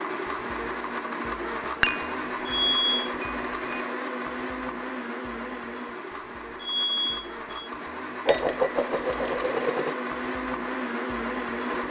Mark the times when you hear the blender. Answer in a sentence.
The blender can be heard from 0.0 to 11.8 s.